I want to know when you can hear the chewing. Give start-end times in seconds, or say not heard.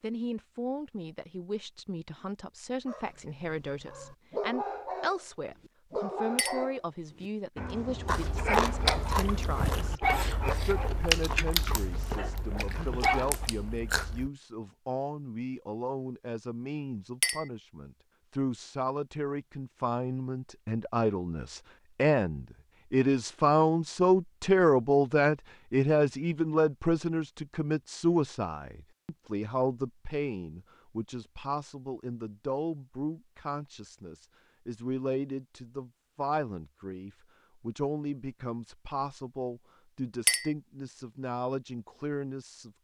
8.1-14.3.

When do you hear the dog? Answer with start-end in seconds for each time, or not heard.
2.9-13.3.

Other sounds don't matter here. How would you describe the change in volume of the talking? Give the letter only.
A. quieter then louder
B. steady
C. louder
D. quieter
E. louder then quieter
E.